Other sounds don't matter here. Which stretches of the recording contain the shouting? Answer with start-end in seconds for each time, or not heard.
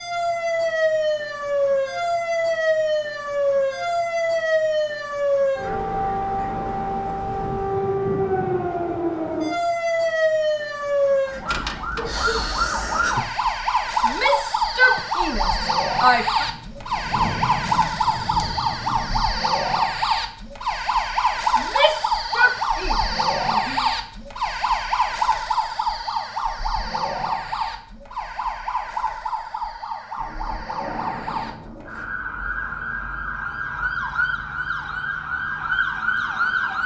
14.1-16.4, 21.6-23.9.